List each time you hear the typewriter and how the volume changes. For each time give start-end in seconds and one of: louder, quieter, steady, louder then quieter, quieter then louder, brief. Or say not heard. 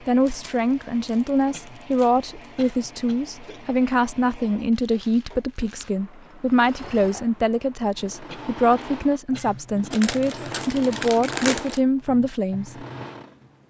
not heard.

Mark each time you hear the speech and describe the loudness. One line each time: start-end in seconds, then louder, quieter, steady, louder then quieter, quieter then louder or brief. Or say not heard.
0.1-12.8 steady.